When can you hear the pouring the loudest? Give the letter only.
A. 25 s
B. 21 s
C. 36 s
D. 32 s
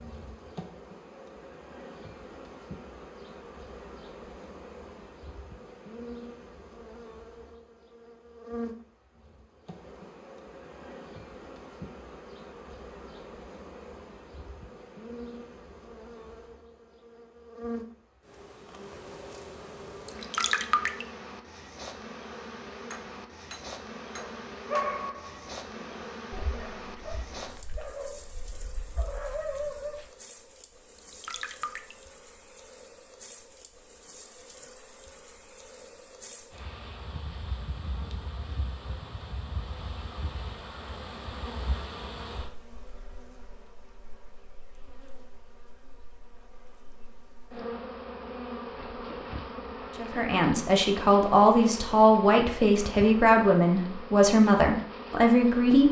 B.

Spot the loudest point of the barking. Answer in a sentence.
The volume of the barking peaks at 25 seconds.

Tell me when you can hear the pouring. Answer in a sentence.
You can hear the pouring from 20.1 to 21.1 s and from 30.9 to 31.9 s.